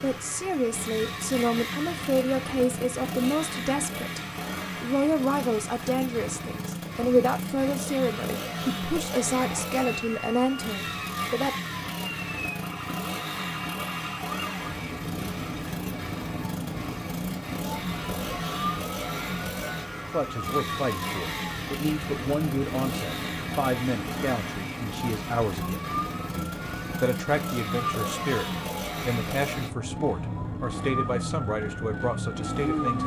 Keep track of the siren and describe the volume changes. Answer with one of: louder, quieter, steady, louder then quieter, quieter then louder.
steady.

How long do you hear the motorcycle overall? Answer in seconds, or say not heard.
33 s.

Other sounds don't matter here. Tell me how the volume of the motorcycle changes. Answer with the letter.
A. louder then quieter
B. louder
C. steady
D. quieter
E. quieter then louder
C.